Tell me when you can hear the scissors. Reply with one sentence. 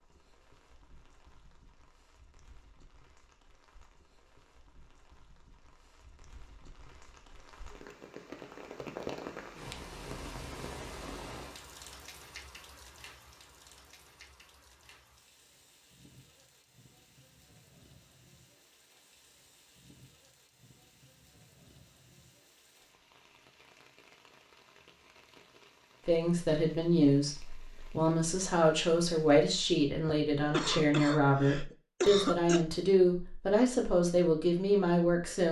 You can't hear the scissors here.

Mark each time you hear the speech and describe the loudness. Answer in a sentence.
The speech can be heard from 26.1 to 35.4 s, at a steady volume.